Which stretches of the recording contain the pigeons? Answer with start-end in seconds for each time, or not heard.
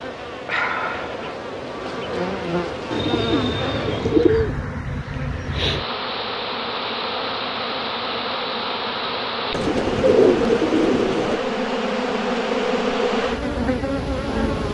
2.9-4.5, 9.5-11.4.